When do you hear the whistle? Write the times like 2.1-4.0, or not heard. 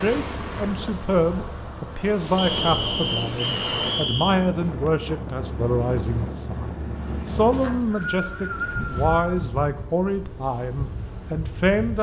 2.4-4.4, 7.5-9.4.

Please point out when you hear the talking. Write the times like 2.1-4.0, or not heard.
0.0-11.9.